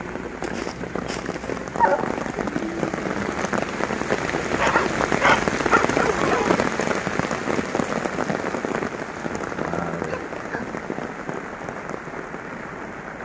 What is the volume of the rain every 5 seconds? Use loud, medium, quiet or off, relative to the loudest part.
loud, loud, medium.